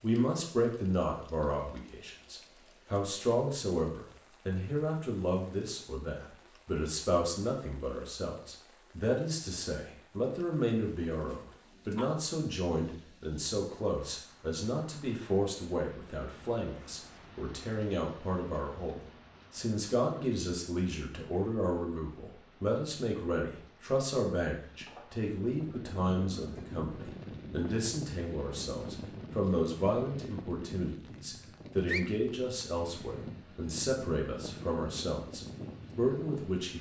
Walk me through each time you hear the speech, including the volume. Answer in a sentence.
You can hear the speech from 0.0 to 36.7 s, at a steady volume.